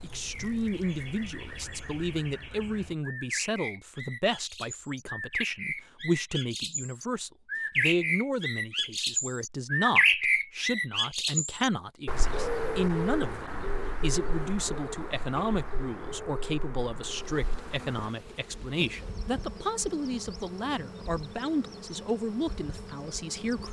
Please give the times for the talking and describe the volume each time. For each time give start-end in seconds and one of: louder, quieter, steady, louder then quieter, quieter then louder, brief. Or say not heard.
0.0-23.6 steady.